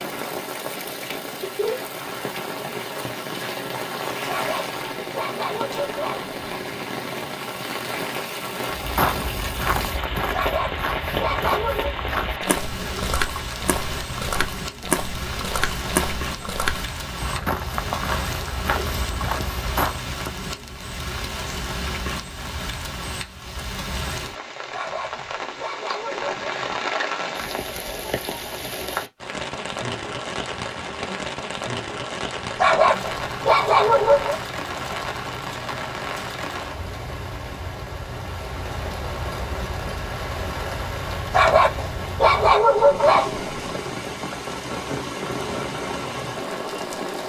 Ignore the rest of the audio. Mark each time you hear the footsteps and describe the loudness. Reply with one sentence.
The footsteps can be heard from 8.8 to 20.0 s, at a steady volume.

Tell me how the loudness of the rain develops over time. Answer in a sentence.
The volume of the rain stays about the same.